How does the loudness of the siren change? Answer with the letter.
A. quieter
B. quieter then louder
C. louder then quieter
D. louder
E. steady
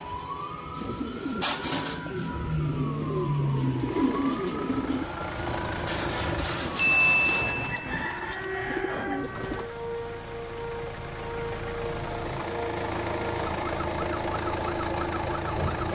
E.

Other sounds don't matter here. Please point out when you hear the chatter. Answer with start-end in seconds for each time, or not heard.
not heard.